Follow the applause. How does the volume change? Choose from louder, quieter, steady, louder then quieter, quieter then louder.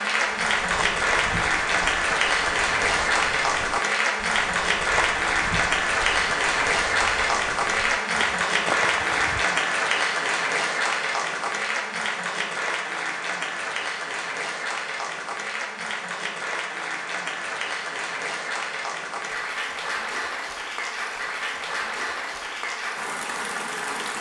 quieter.